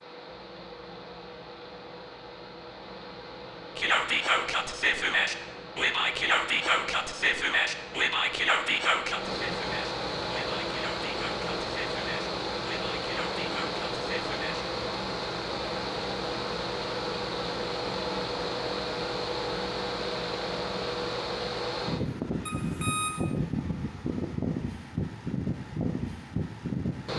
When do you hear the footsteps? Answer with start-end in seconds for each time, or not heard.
not heard.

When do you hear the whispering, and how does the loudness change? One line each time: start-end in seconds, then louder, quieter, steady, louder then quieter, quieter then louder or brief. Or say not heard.
3.8-14.7 quieter.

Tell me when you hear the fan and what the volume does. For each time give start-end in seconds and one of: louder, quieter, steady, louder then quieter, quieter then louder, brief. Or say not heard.
0.0-27.1 louder.